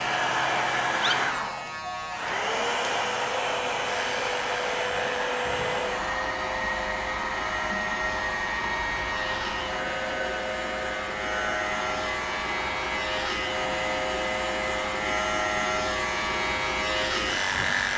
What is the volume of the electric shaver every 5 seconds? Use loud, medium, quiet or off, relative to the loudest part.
medium, medium, loud, loud.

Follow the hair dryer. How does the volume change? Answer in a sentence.
The loudness of the hair dryer goes down.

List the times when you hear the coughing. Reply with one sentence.
You can't hear the coughing here.